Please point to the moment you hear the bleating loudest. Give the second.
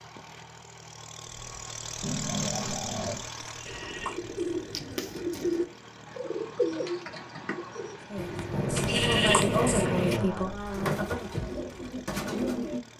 9 s.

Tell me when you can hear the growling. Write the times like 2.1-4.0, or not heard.
2.0-3.2, 8.5-11.0.